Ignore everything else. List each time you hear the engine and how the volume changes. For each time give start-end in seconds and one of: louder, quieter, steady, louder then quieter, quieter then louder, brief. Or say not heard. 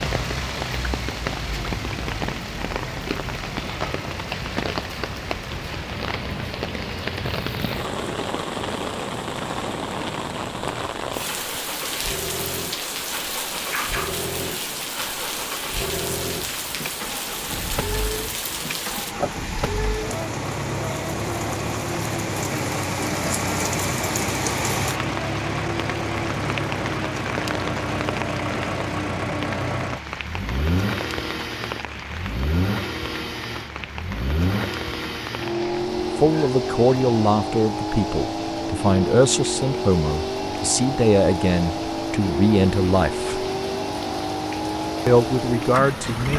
0.0-46.3 louder.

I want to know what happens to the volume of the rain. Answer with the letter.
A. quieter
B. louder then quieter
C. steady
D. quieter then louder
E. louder
A.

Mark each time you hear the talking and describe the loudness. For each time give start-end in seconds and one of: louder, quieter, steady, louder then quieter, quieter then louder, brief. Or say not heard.
36.1-43.5 steady
45.0-46.3 brief.